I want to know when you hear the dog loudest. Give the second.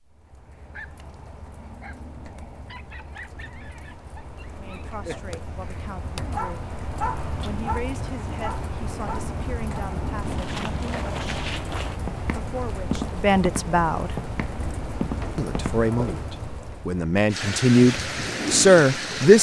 7 s.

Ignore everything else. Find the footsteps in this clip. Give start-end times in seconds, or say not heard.
10.2-16.2.